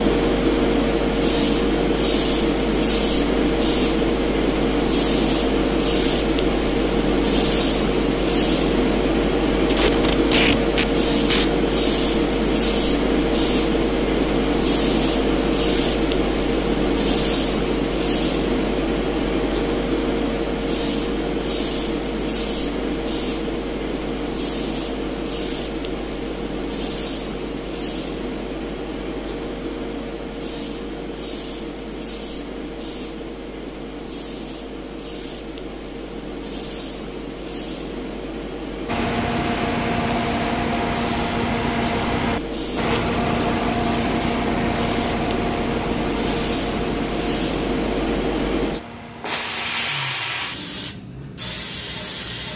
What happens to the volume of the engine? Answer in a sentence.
The loudness of the engine goes down.